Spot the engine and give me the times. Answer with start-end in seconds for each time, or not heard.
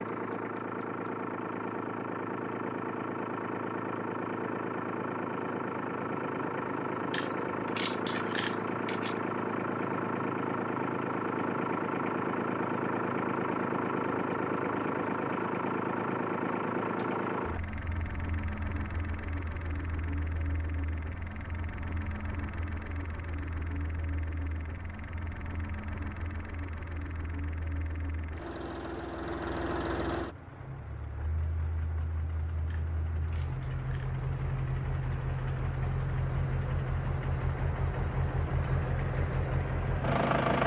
0.0-40.6.